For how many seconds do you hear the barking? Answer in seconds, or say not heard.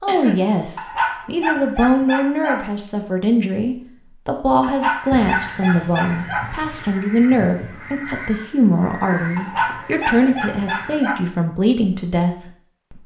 6 s.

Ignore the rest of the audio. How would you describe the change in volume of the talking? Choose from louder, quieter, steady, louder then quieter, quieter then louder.
steady.